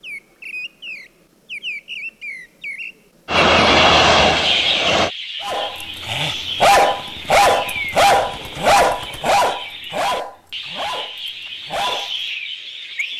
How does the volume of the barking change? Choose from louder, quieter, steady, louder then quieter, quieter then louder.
quieter.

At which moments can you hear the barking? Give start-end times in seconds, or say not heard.
5.4-12.1.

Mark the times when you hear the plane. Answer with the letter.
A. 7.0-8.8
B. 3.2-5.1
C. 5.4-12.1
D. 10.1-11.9
B.